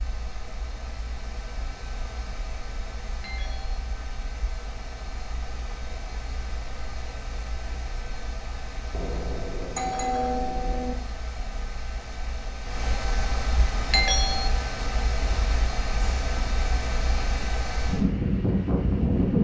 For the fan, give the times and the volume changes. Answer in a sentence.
The fan can be heard from 0.0 to 19.4 s, getting louder.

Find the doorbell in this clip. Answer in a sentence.
The doorbell can be heard from 3.2 to 3.8 s, from 8.9 to 10.9 s and from 13.9 to 14.5 s.